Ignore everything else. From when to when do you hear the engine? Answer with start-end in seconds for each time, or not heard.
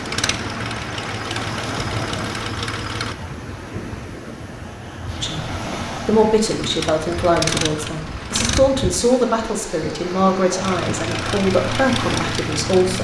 0.0-3.1, 6.5-8.6, 10.6-12.9.